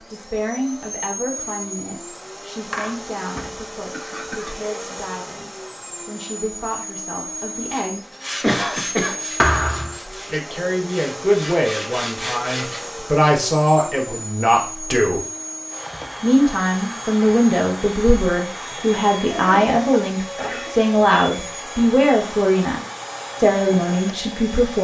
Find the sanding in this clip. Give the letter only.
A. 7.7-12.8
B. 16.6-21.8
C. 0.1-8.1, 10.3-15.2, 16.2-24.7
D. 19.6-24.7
A.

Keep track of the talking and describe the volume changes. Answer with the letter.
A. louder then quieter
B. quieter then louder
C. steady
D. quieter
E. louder
E.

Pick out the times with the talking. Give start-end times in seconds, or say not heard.
0.1-8.1, 10.3-15.2, 16.2-24.7.